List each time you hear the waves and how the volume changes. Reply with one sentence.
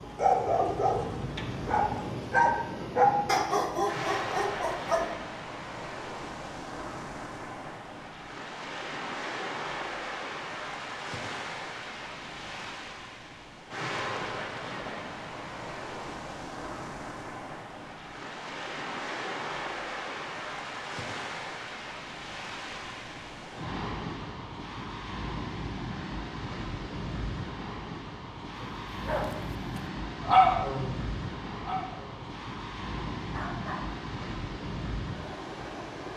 You can hear the waves from 0.0 to 36.1 s, at a steady volume.